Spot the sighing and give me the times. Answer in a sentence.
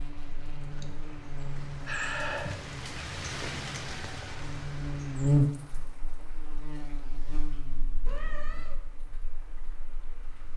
The sighing can be heard from 0.7 to 2.7 s.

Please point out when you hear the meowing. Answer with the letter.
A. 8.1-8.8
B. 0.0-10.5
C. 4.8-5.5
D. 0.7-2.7
A.